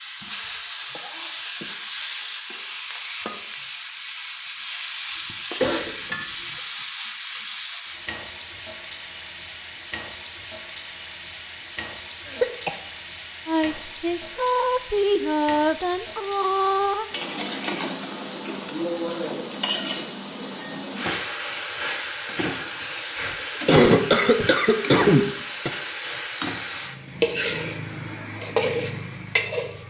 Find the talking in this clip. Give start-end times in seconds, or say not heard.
13.4-17.1.